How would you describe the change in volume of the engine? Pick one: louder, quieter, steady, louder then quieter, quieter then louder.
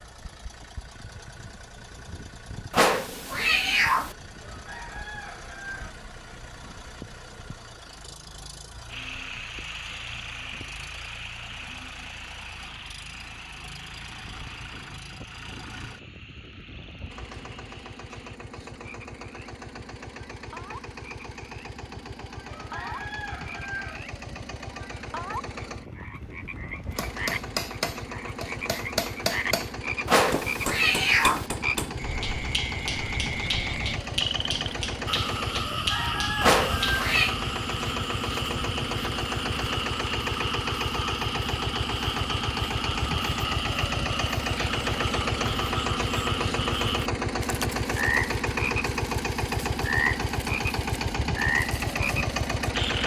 louder.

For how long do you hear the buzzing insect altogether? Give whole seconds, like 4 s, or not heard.
not heard.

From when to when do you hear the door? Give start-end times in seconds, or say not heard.
not heard.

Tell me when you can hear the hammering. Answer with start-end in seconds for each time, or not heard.
26.9-37.0.